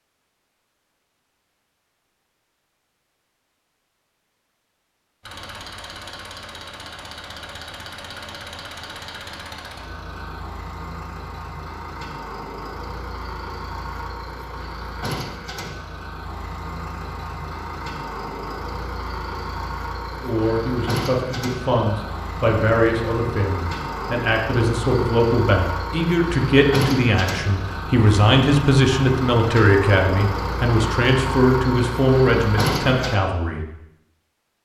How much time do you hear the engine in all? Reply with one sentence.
The engine can be heard for 28 seconds in total.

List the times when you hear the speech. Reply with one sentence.
You can hear the speech from 20.2 to 33.6 s.